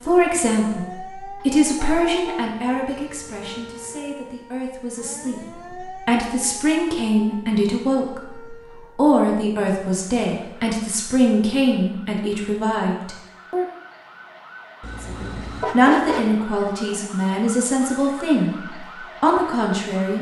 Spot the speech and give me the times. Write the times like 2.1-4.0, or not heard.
0.0-13.7, 15.0-20.1.